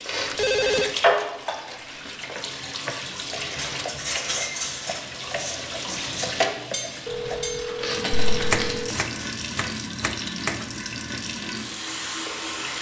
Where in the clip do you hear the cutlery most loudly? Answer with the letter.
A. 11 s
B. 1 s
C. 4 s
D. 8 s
C.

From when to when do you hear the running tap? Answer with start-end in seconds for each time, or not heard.
0.0-12.7.